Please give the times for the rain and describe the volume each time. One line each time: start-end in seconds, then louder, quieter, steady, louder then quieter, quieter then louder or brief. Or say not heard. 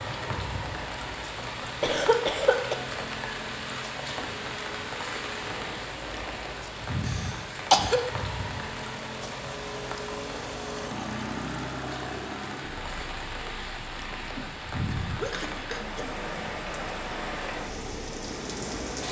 0.0-19.0 steady.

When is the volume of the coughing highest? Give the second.
8 s.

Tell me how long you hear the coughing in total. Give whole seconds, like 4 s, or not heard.
4 s.